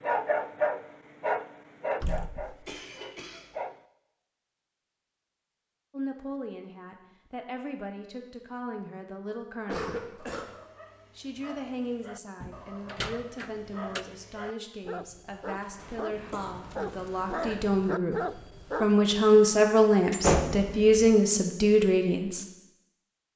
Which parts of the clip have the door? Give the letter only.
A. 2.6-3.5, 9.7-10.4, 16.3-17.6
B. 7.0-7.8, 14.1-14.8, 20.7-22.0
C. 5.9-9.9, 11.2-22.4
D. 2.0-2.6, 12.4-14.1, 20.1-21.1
D.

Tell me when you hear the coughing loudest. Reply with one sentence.
The volume of the coughing peaks at 10 seconds.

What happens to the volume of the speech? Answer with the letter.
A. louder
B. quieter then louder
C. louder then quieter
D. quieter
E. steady
A.